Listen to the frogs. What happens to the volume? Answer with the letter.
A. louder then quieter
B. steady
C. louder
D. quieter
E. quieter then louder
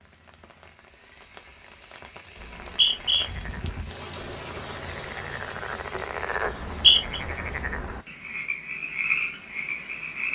C.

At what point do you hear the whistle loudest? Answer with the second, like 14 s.
7 s.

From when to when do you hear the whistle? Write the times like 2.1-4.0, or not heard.
2.4-3.2, 6.5-7.2.